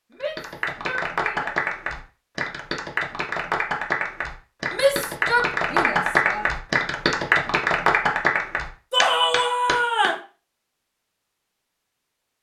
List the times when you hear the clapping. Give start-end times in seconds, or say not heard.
0.2-10.1.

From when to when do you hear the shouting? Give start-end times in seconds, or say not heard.
0.1-1.6, 4.7-6.5, 8.9-10.2.